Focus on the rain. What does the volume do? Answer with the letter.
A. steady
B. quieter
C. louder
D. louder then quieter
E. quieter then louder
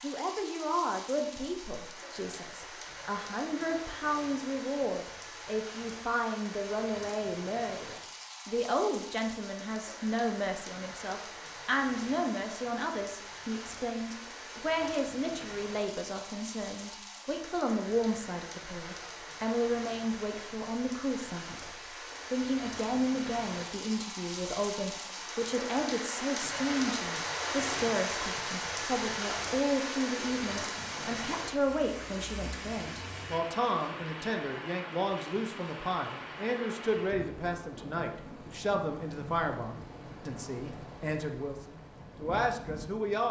D.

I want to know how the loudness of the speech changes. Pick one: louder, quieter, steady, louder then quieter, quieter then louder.
steady.